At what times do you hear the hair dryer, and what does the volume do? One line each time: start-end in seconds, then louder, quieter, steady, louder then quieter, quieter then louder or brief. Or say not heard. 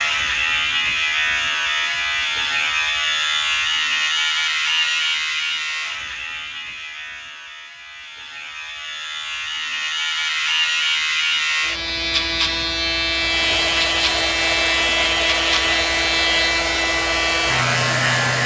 13.1-18.4 steady.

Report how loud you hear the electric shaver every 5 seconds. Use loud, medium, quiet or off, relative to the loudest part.
loud, medium, loud, loud.